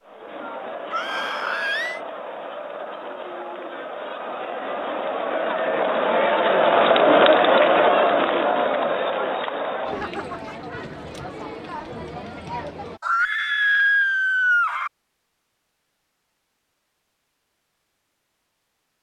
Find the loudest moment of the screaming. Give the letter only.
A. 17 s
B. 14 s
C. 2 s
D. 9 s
B.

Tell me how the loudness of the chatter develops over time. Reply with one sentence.
The volume of the chatter goes up, then down.